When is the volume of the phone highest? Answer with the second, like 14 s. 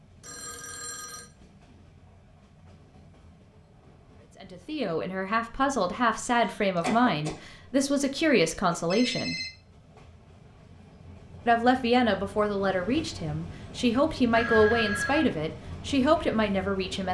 15 s.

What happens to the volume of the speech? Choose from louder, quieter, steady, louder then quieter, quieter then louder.
steady.